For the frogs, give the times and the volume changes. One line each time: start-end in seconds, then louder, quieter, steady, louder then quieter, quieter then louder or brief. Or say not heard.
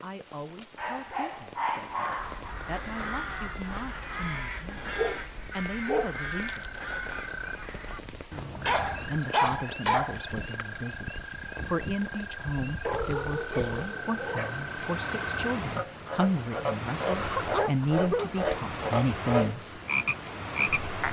5.8-21.0 louder.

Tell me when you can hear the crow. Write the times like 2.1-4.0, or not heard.
2.1-9.2.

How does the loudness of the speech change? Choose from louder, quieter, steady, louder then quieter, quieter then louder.
louder.